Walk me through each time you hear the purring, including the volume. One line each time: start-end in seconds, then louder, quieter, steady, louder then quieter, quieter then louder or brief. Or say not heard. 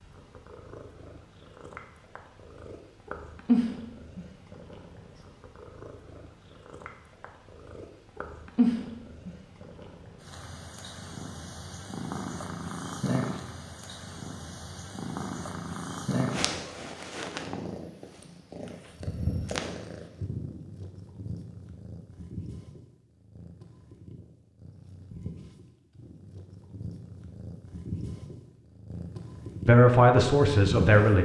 0.0-31.1 quieter.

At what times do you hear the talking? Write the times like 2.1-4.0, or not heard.
29.6-31.1.